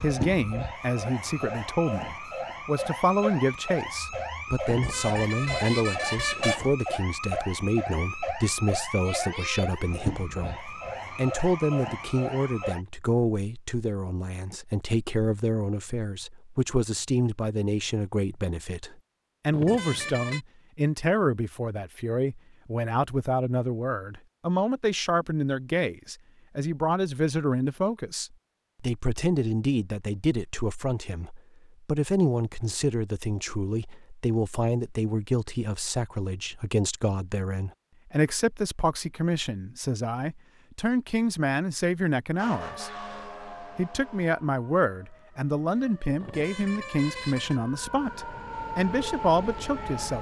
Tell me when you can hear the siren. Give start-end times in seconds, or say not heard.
0.0-12.8, 42.4-50.1.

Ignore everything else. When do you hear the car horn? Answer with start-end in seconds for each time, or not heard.
4.7-6.7, 19.5-20.4, 46.2-47.6.